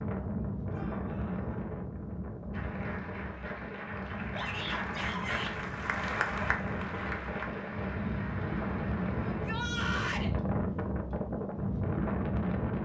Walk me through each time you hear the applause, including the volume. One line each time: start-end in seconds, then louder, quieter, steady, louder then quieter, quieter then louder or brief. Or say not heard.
2.5-9.5 louder then quieter.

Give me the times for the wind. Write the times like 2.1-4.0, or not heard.
0.0-12.8.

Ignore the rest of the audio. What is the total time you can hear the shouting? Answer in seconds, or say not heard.
3 s.